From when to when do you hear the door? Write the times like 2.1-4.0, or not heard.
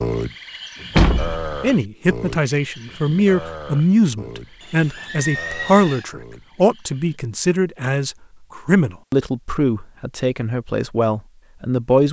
0.9-1.6.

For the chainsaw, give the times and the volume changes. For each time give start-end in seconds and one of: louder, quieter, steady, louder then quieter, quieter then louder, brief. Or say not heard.
not heard.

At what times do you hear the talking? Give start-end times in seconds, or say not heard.
1.6-12.0.